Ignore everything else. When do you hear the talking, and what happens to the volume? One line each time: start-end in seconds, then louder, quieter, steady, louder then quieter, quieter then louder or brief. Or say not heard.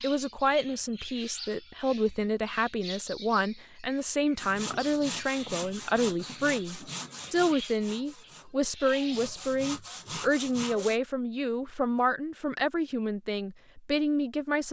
0.0-14.6 steady.